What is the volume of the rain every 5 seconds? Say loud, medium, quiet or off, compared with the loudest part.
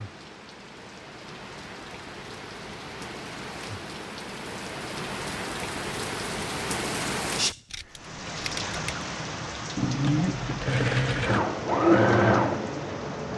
medium, loud, medium.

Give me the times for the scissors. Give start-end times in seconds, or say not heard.
7.7-9.1.